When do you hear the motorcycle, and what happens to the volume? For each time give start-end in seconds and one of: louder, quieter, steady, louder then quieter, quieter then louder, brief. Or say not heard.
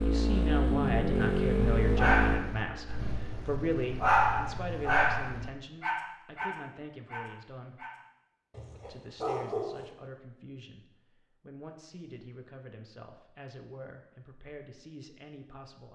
0.0-4.5 quieter.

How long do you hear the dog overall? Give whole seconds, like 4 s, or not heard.
8 s.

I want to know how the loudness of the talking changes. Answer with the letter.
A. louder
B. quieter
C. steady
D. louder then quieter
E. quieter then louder
B.